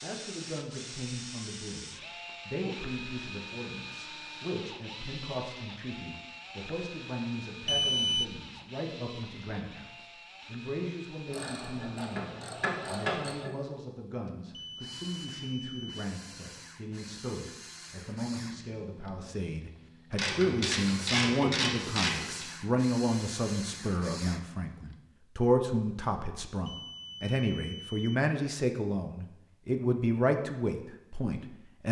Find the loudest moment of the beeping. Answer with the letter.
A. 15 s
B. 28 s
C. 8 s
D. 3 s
C.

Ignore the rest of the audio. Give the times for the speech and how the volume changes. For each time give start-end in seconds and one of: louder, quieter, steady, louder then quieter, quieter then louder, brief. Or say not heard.
0.0-31.8 louder.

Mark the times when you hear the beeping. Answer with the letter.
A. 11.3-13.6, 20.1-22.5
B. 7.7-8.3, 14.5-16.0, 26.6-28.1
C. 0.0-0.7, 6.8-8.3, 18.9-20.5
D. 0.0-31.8
B.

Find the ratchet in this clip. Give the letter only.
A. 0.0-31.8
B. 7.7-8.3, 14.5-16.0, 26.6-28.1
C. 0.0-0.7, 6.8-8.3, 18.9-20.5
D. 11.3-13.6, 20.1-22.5
D.